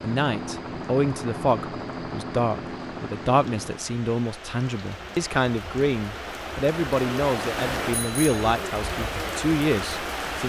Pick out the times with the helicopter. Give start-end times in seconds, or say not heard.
0.0-4.0.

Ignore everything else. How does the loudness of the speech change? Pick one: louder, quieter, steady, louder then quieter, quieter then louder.
steady.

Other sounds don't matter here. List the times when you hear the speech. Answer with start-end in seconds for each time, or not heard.
0.0-10.4.